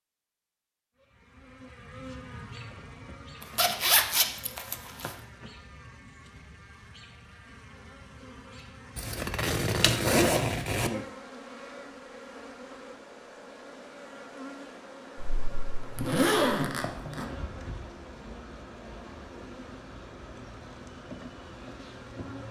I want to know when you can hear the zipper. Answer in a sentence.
You can hear the zipper from 3.4 to 5.2 s, from 8.9 to 10.9 s and from 15.2 to 17.3 s.